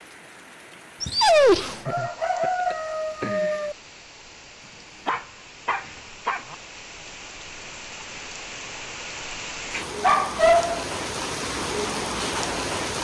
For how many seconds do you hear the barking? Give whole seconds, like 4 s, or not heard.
3 s.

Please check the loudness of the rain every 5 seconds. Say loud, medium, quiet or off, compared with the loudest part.
quiet, medium, loud.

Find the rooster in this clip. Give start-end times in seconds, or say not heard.
1.9-3.8.